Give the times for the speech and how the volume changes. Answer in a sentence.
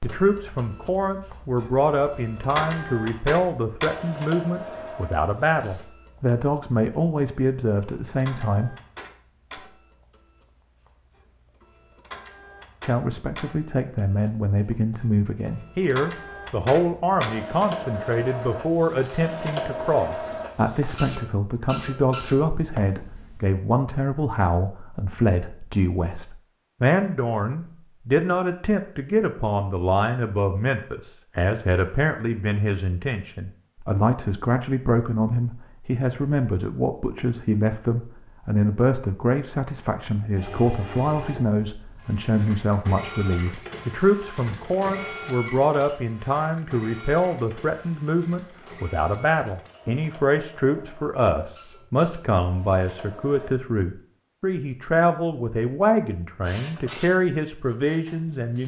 You can hear the speech from 0.0 to 8.8 s, at a steady volume; and from 12.8 to 58.6 s, at a steady volume.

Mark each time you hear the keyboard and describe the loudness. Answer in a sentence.
The keyboard can't be heard in this clip.